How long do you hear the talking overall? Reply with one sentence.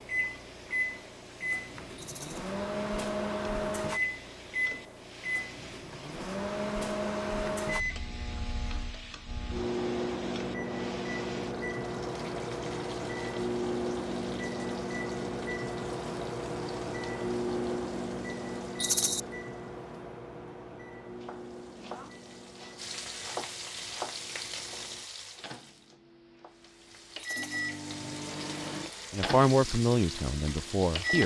The talking can be heard for 2 seconds in total.